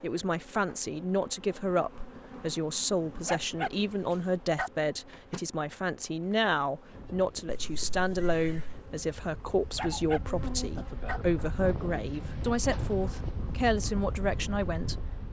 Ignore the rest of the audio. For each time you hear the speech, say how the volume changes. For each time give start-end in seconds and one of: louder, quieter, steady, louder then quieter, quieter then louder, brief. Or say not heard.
0.0-15.2 steady.